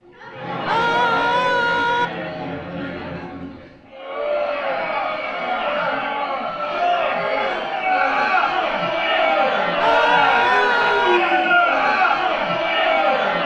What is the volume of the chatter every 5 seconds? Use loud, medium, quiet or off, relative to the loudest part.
medium, loud, loud.